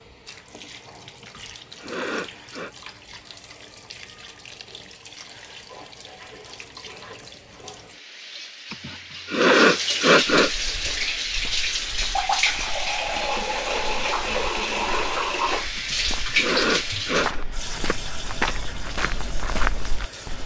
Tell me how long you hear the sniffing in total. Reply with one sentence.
You can hear the sniffing for 5 seconds altogether.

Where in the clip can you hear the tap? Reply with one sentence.
The tap can be heard from 0.0 to 20.4 s.